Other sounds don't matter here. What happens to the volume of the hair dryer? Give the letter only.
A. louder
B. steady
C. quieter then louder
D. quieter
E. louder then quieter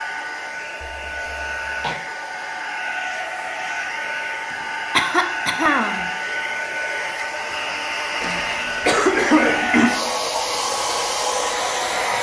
A.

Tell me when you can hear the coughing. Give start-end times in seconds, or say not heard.
0.8-2.0, 4.9-6.1, 8.2-9.9.